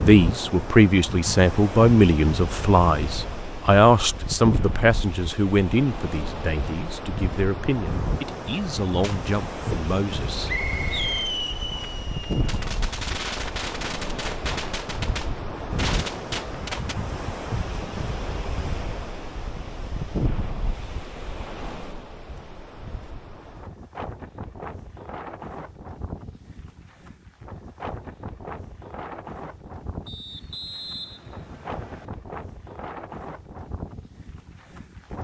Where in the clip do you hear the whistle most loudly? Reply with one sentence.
The loudest moment of the whistle is at 11 seconds.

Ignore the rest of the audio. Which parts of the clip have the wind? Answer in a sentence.
You can hear the wind from 0.0 to 35.1 s.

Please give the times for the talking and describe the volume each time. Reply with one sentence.
You can hear the talking from 0.0 to 10.5 s, getting quieter.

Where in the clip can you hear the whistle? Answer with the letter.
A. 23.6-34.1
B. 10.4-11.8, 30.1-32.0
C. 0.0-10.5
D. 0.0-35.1
B.